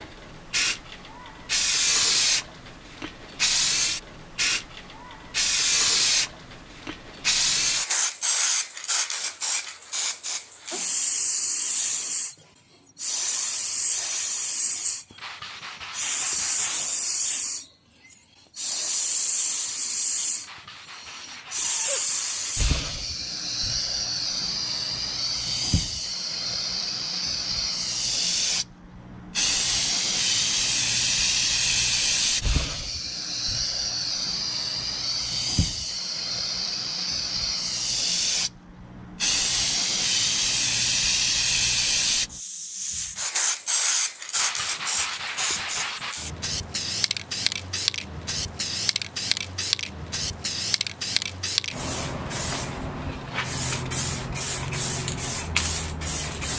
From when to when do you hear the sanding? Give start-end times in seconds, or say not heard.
15.2-16.9, 20.4-22.7, 44.4-46.1.